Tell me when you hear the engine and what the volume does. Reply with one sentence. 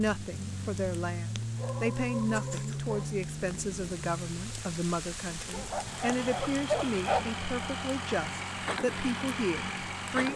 The engine can be heard from 0.0 to 10.3 s, getting quieter then louder.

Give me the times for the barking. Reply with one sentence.
You can hear the barking from 1.4 to 3.0 s and from 5.5 to 7.3 s.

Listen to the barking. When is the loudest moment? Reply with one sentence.
The loudest moment of the barking is at 7 seconds.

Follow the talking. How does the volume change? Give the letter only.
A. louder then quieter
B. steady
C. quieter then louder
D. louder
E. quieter
B.